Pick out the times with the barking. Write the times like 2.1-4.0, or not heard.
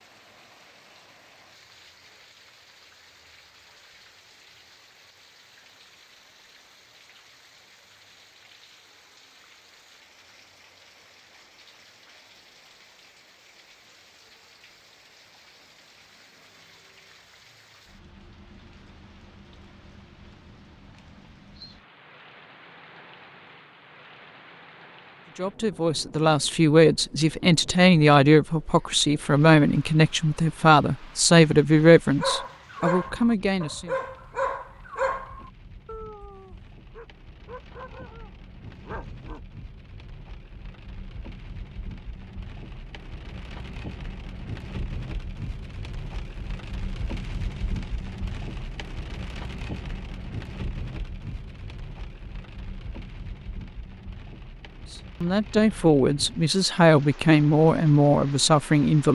32.2-39.4.